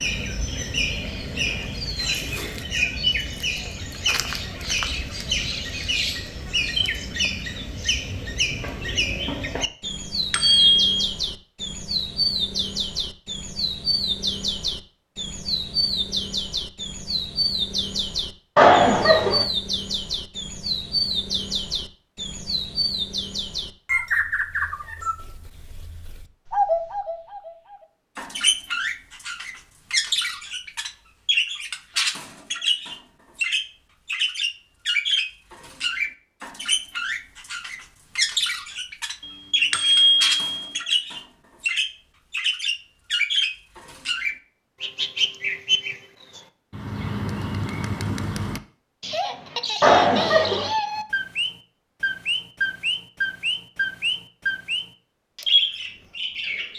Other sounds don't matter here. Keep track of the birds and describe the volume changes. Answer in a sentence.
The volume of the birds stays about the same.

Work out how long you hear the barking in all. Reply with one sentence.
You can't hear the barking here.